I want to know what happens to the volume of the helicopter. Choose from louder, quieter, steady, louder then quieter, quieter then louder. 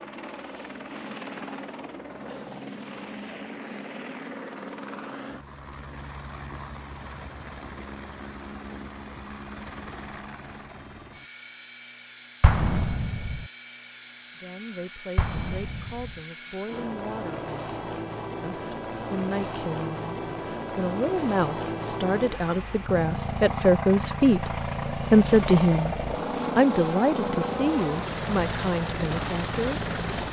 louder.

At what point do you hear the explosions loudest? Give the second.
13 s.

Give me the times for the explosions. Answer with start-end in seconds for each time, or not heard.
12.4-13.4, 15.2-16.2.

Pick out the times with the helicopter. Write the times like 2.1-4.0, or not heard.
0.0-30.2.